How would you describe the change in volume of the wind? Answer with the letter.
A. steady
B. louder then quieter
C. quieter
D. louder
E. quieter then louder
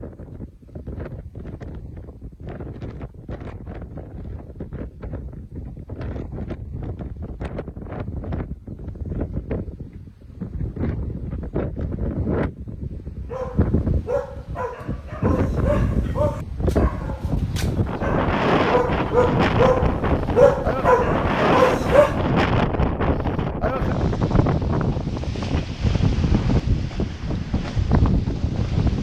D.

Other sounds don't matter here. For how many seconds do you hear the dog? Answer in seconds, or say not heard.
9 s.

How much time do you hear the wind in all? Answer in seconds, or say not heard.
29 s.